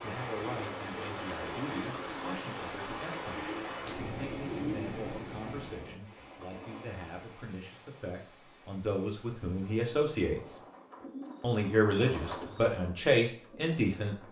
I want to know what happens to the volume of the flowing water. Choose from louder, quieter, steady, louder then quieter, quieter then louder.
quieter.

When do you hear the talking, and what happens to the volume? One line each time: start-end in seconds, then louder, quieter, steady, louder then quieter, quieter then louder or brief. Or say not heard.
0.0-10.4 louder
11.4-14.2 brief.